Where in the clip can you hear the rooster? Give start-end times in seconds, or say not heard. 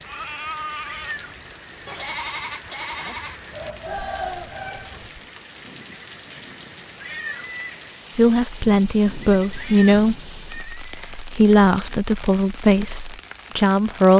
3.5-5.1.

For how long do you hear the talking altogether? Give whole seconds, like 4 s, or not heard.
6 s.